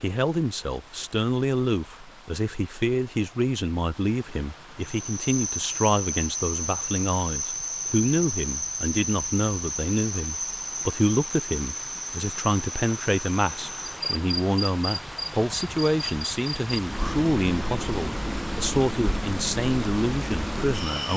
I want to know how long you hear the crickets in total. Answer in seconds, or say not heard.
16 s.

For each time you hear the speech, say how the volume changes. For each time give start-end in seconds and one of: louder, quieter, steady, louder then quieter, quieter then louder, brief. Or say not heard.
0.0-21.1 steady.